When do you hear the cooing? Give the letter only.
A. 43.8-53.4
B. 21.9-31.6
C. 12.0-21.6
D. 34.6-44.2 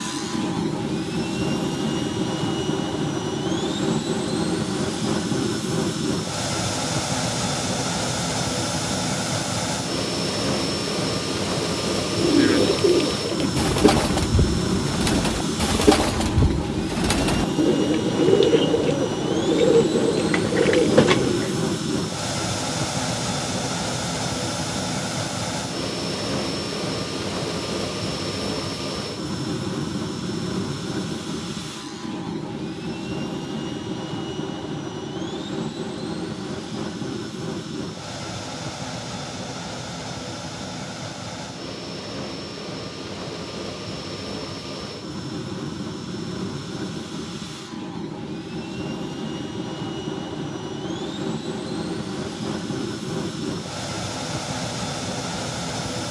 C.